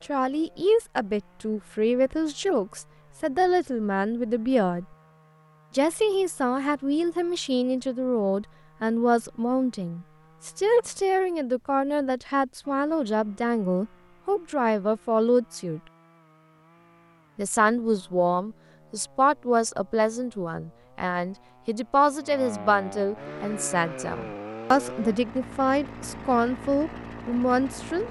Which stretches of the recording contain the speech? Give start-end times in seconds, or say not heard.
0.1-4.8, 5.8-15.8, 17.4-28.0.